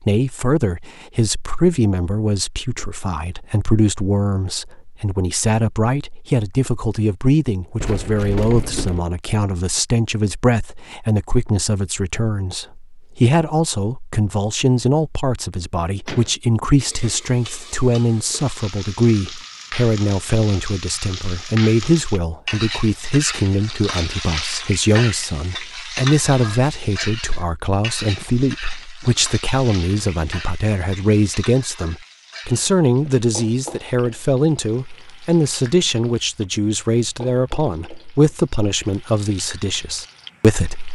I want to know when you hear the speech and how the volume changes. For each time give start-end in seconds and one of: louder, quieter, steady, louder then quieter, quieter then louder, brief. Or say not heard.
0.0-40.9 steady.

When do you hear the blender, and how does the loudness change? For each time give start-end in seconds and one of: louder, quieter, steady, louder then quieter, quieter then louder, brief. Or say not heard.
not heard.